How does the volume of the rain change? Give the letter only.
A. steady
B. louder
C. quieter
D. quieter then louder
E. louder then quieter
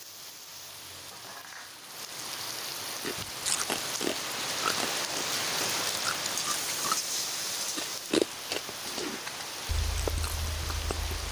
E.